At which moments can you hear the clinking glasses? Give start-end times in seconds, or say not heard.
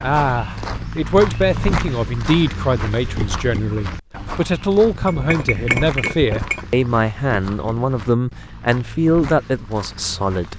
4.8-6.7.